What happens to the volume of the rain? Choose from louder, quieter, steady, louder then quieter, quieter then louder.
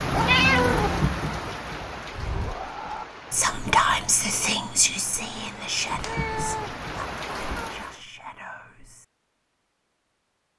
quieter then louder.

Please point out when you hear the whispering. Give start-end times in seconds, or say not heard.
2.1-9.1.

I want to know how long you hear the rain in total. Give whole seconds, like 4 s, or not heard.
8 s.